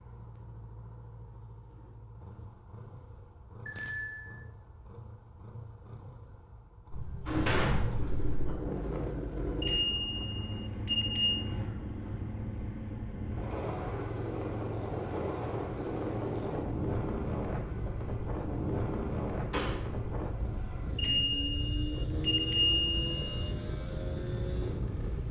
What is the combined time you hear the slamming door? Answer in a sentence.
The slamming door can be heard for 2 seconds in total.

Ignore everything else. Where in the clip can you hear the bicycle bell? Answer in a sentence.
The bicycle bell can be heard from 3.6 to 4.5 s, from 9.6 to 11.4 s and from 20.9 to 23.2 s.